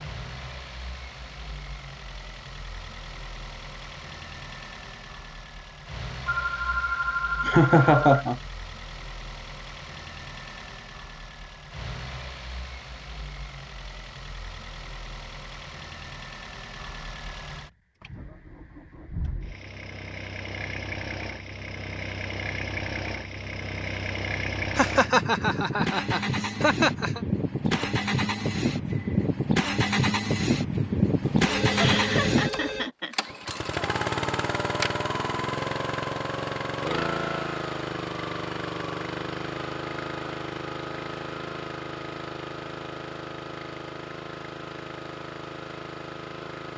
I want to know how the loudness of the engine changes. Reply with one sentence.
The loudness of the engine goes up, then down.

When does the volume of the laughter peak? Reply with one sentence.
The volume of the laughter peaks at 8 seconds.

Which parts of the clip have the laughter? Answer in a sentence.
The laughter can be heard from 7.5 to 8.4 s, from 24.8 to 27.2 s and from 31.8 to 33.1 s.